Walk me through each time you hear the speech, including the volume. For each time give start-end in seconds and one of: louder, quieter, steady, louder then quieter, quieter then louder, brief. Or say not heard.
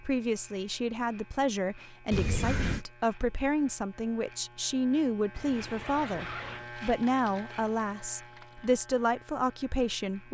0.0-10.2 steady.